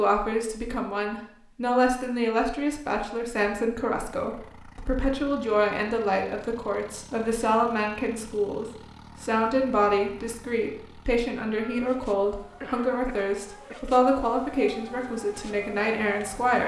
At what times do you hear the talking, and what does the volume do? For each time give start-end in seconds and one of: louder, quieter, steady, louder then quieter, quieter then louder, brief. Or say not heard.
0.0-16.6 steady.